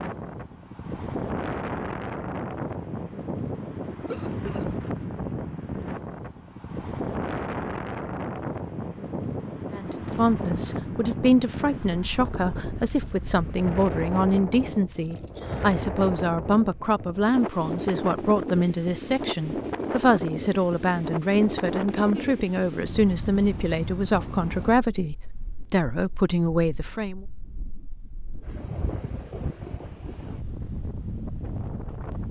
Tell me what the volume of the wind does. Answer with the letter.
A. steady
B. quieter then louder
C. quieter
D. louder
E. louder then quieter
C.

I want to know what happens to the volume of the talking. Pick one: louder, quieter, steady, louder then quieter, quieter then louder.
steady.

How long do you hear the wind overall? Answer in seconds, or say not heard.
32 s.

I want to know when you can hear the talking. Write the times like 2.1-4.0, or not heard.
9.8-27.2.